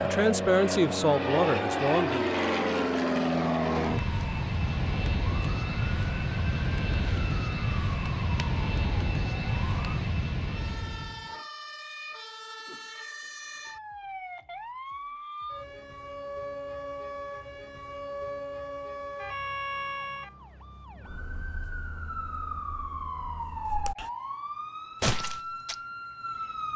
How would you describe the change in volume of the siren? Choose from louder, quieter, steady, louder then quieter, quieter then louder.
louder.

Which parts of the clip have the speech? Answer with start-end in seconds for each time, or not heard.
0.0-2.3.